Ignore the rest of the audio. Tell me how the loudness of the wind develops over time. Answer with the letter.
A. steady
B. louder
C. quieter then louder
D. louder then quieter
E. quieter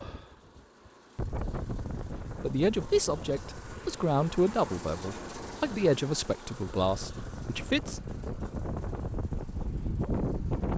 C.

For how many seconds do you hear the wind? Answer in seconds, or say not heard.
11 s.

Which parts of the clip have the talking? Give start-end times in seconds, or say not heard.
2.4-8.0.